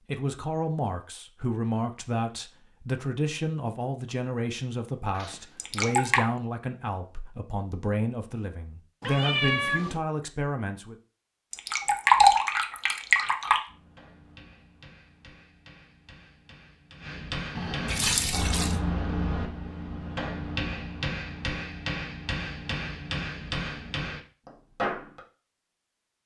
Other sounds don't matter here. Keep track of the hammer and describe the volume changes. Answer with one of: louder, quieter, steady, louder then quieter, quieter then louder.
louder.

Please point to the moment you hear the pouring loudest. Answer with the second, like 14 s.
12 s.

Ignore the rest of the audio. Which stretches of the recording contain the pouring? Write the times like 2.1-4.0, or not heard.
5.5-6.2, 11.5-13.6, 17.9-18.8.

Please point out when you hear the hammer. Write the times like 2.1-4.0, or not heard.
13.7-25.2.